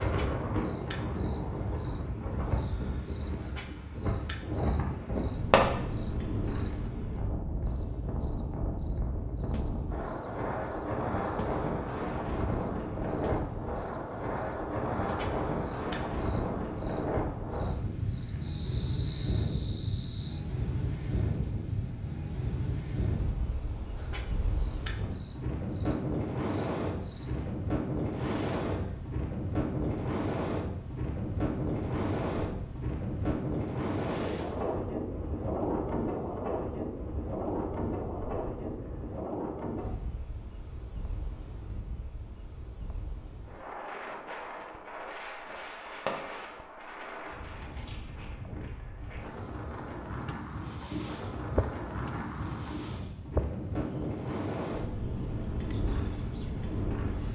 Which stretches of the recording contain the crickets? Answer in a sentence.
You can hear the crickets from 0.0 to 57.3 s.